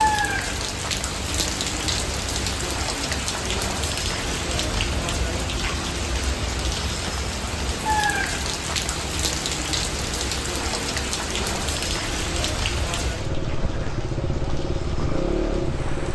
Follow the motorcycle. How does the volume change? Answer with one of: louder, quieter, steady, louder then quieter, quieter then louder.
louder.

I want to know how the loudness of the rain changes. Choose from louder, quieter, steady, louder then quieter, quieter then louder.
quieter.